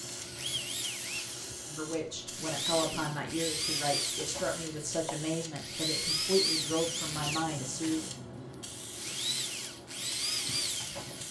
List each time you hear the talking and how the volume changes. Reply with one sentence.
The talking can be heard from 1.6 to 8.1 s, at a steady volume.